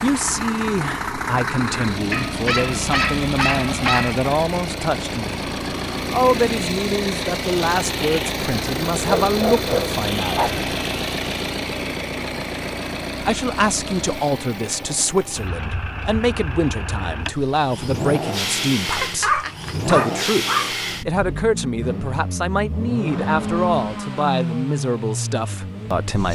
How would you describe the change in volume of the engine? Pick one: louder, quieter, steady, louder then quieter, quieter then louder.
steady.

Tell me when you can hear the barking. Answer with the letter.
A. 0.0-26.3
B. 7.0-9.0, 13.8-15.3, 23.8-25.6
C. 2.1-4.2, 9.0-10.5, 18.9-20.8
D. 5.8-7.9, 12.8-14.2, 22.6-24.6
C.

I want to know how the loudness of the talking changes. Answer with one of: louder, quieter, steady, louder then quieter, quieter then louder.
steady.